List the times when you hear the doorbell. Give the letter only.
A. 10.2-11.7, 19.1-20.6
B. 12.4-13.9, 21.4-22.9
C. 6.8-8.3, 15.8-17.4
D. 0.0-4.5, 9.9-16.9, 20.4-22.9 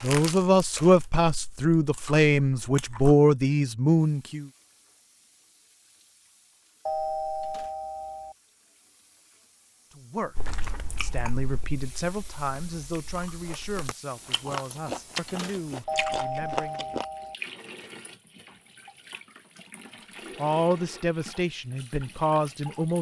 C.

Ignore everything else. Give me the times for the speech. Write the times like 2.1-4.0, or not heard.
0.0-4.5, 9.9-16.9, 20.4-22.9.